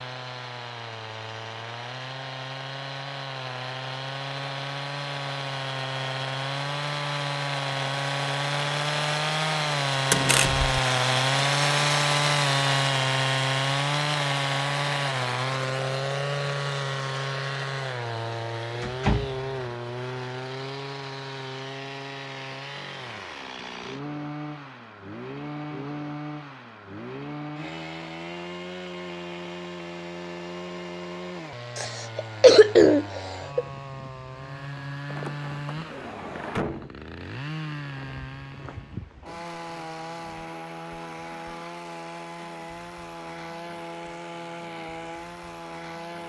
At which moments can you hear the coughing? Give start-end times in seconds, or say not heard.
31.8-33.6.